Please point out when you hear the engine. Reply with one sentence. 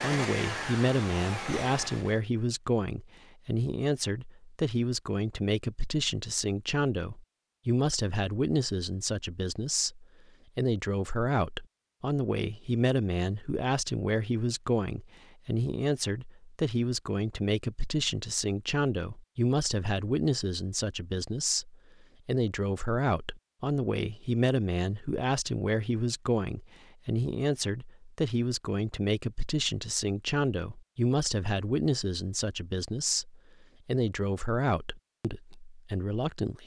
The engine can be heard from 0.0 to 2.2 s.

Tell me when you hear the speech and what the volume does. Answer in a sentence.
You can hear the speech from 0.0 to 36.6 s, at a steady volume.